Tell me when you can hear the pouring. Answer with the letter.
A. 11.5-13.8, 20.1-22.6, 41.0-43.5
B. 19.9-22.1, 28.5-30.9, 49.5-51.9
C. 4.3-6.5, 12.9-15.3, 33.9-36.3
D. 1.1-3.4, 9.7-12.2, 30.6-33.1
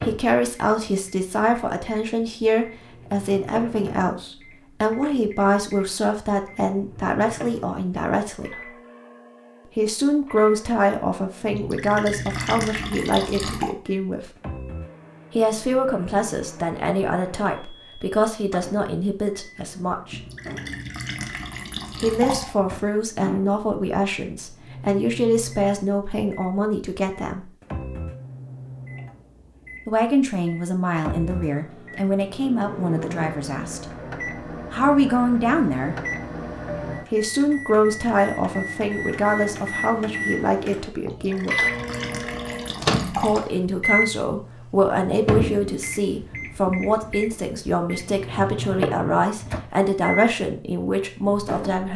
A.